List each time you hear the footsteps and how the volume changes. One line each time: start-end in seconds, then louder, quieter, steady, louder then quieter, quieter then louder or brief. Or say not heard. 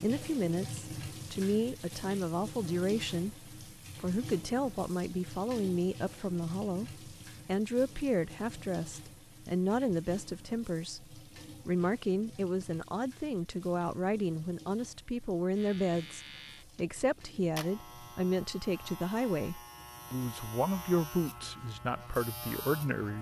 not heard.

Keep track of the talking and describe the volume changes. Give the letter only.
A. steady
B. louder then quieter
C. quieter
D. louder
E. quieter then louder
A.